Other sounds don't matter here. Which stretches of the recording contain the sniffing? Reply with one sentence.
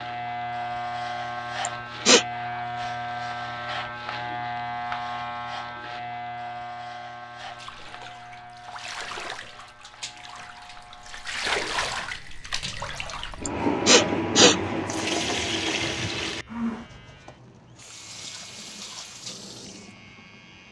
The sniffing can be heard from 1.6 to 2.2 s and from 13.4 to 14.6 s.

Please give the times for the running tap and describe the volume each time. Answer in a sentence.
You can hear the running tap from 7.4 to 20.6 s, getting louder then quieter.